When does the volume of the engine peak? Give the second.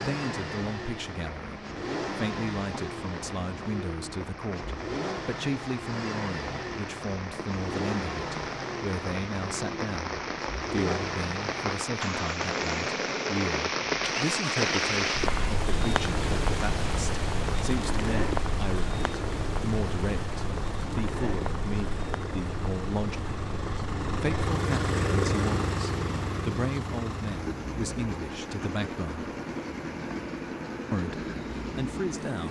25 s.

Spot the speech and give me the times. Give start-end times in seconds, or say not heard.
0.0-23.4, 24.2-29.3, 30.9-32.4.